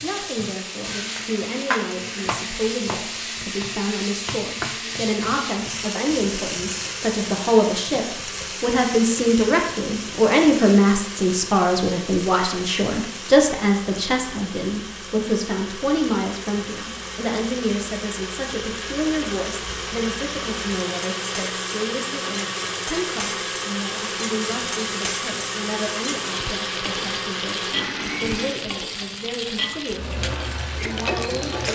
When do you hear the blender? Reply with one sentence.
You can hear the blender from 0.0 to 28.8 s.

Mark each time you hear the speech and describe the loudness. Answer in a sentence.
You can hear the speech from 0.0 to 31.6 s, getting louder then quieter.